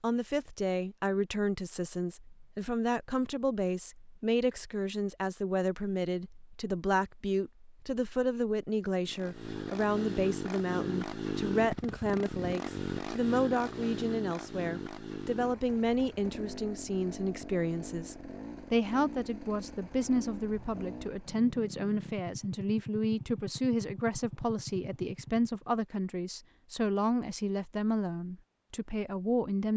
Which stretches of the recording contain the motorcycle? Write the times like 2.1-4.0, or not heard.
9.0-25.6.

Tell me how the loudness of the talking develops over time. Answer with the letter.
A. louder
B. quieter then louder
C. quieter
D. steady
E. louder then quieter
D.